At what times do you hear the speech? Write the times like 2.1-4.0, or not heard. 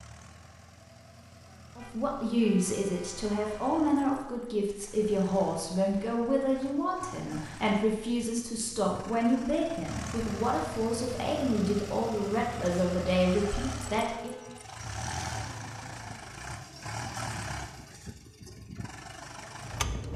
1.8-14.3.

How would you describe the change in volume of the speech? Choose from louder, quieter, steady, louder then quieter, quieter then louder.
steady.